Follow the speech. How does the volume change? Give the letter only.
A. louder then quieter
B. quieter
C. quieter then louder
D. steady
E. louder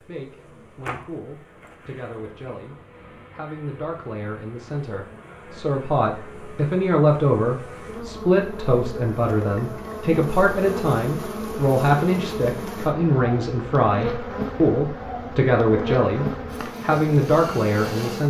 E.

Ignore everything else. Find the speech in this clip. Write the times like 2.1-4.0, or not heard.
0.0-18.2.